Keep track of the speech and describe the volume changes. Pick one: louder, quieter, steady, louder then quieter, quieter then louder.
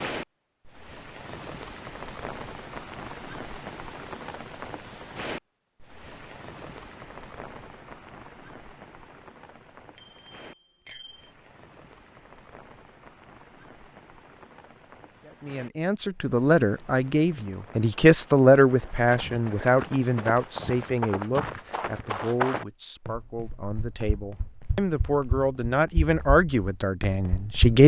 quieter then louder.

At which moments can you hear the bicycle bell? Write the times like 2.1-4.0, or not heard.
9.9-11.3.